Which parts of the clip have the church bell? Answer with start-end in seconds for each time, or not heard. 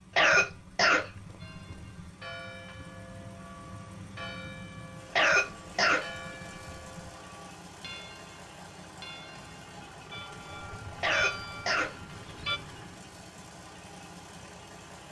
1.4-12.6.